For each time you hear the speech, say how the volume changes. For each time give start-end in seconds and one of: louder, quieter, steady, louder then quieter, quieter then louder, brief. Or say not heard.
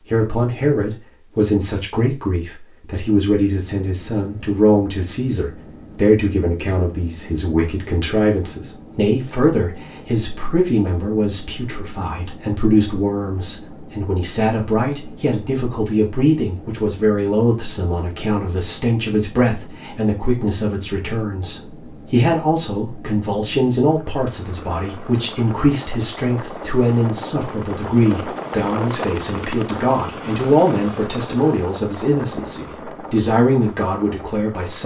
0.1-34.8 steady.